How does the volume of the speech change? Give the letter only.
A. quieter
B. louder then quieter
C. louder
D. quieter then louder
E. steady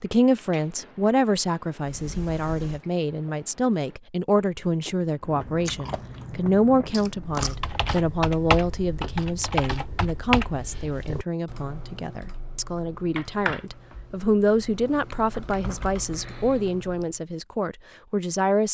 E.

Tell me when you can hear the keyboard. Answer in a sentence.
You can hear the keyboard from 7.2 to 17.1 s.